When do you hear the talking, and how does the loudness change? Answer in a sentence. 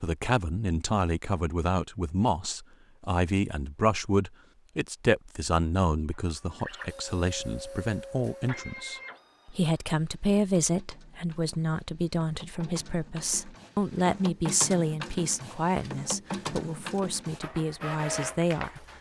The talking can be heard from 0.0 to 18.8 s, at a steady volume.